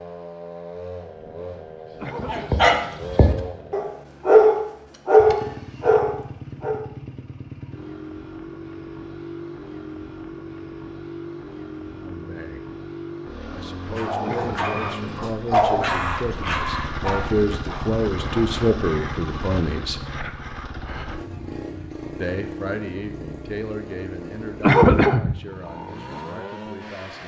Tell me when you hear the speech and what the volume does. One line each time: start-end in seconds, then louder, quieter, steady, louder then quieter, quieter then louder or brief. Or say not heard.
11.8-12.7 brief
13.5-20.1 louder
22.2-27.2 quieter.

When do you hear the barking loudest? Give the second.
4 s.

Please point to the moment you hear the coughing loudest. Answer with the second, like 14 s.
25 s.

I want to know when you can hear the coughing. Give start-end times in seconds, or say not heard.
2.0-2.7, 14.2-14.8, 24.6-25.4.